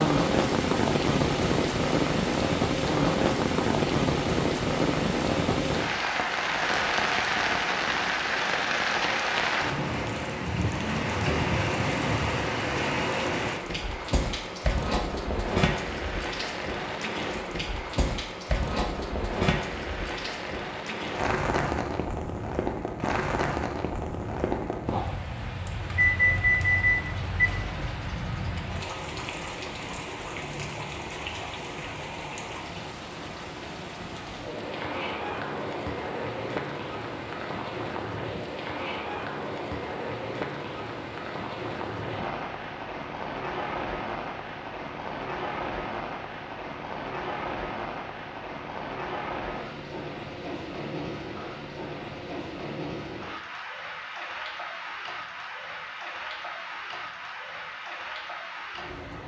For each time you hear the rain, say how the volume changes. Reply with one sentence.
You can hear the rain from 0.0 to 59.2 s, getting quieter.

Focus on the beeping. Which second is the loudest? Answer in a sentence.
The loudest moment of the beeping is at 26 seconds.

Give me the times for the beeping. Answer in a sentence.
You can hear the beeping from 25.9 to 27.4 s.